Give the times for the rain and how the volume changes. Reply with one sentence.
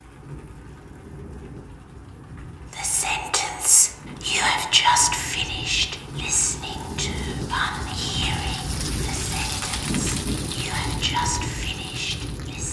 The rain can be heard from 0.0 to 12.6 s, getting louder.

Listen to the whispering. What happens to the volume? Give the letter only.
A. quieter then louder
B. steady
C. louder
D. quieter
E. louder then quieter
A.